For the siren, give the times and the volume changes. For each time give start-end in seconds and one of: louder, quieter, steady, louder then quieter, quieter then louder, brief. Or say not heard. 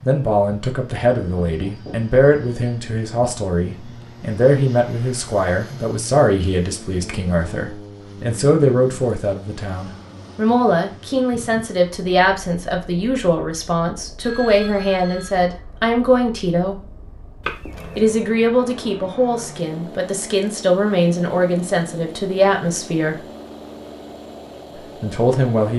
not heard.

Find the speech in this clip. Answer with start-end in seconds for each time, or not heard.
0.0-16.8, 17.9-23.2, 24.8-25.7.